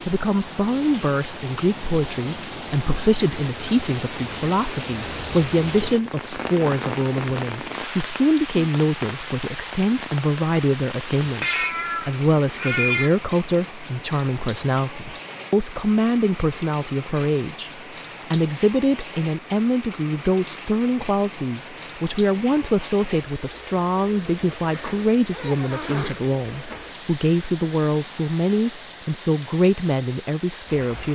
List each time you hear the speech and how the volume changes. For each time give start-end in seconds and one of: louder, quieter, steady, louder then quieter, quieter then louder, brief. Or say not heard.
0.1-17.7 steady
18.3-31.0 steady.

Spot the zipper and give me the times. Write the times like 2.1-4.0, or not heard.
24.6-26.2.